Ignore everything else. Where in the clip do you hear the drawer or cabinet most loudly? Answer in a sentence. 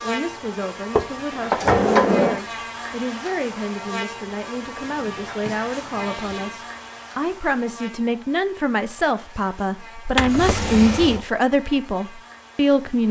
The volume of the drawer or cabinet peaks at 2 seconds.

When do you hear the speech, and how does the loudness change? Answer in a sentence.
The speech can be heard from 0.0 to 13.0 s, getting louder.